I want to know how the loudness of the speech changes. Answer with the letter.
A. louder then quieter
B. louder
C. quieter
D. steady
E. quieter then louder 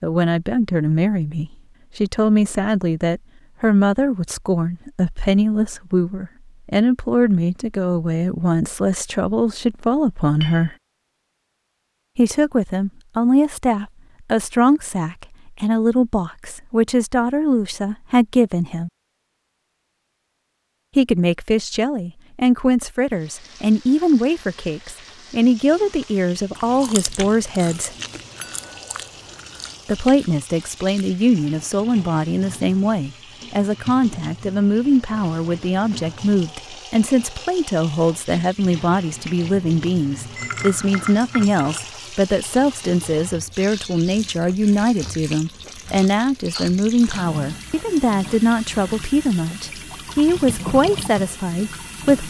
D.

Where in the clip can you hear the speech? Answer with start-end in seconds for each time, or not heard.
0.0-10.8, 12.2-18.9, 20.9-27.9, 29.9-52.2.